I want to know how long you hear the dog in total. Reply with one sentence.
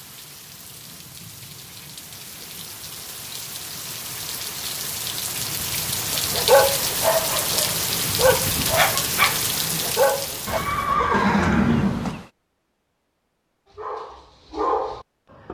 The dog can be heard for 6 seconds in total.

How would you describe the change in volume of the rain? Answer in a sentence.
The loudness of the rain goes up.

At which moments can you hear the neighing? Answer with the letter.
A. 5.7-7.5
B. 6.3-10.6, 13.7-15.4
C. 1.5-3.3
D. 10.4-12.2
D.